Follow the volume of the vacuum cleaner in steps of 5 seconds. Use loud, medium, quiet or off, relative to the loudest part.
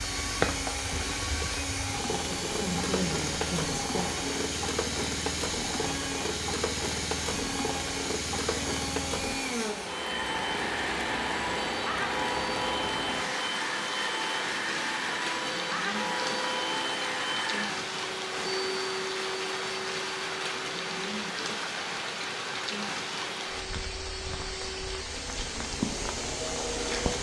loud, loud, loud, loud, medium, loud.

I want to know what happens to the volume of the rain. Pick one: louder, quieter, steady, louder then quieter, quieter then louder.
steady.